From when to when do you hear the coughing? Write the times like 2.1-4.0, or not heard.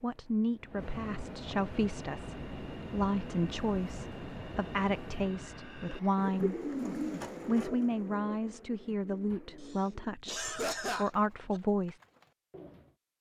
9.6-11.6.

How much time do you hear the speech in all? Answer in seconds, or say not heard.
11 s.